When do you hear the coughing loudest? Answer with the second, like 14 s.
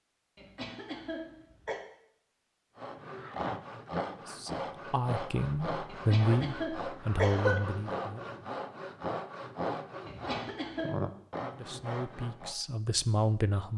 7 s.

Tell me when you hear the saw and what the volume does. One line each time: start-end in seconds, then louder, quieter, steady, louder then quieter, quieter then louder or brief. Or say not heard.
2.8-12.6 steady.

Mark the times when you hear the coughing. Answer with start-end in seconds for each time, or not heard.
0.3-1.8, 5.9-7.6, 10.1-11.1.